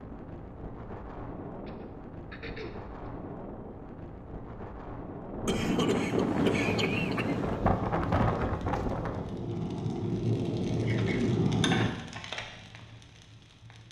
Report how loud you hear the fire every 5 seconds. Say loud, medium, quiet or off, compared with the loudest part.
off, medium, loud.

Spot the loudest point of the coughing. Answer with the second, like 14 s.
7 s.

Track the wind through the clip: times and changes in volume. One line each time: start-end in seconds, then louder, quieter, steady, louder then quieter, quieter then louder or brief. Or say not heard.
0.0-9.4 louder.